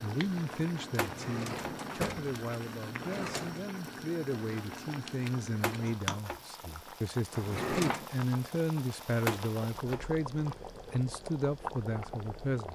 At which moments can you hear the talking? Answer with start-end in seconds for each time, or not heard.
0.0-12.7.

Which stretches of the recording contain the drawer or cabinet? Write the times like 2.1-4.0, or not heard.
0.9-3.6, 7.3-8.1.